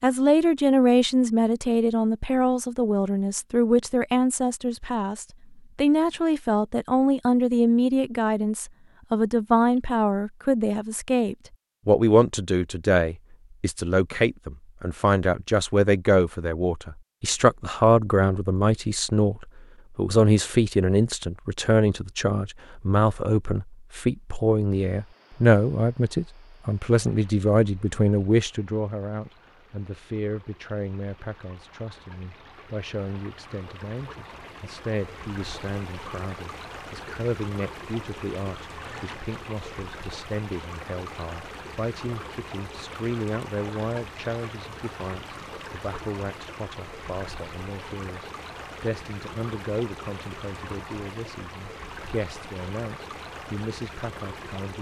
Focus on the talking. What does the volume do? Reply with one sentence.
The loudness of the talking goes down.